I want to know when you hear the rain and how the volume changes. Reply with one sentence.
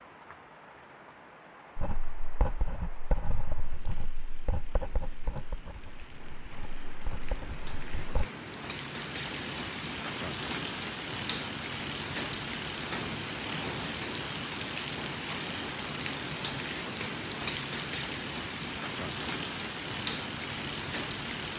You can hear the rain from 0.0 to 21.5 s, getting louder.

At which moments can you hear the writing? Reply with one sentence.
The writing can be heard from 1.8 to 8.2 s.